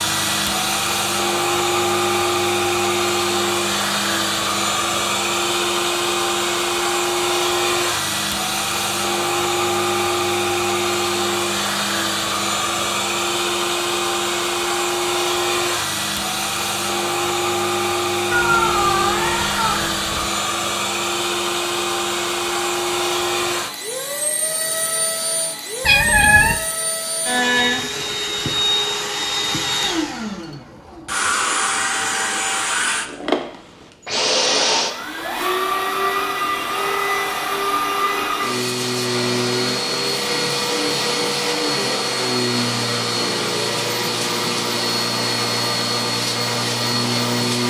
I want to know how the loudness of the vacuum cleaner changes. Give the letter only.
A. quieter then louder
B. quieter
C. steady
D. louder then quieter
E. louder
C.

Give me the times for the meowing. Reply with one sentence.
You can hear the meowing from 18.3 to 20.3 s and from 25.8 to 26.6 s.